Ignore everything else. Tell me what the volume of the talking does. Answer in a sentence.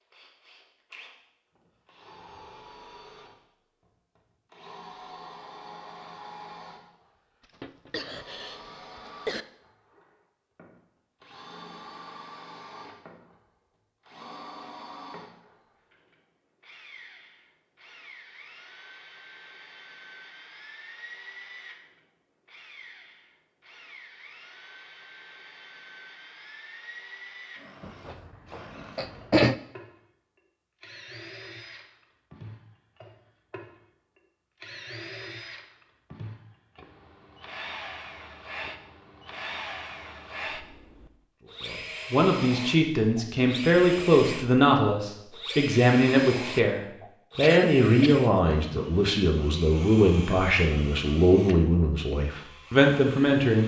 The volume of the talking stays about the same.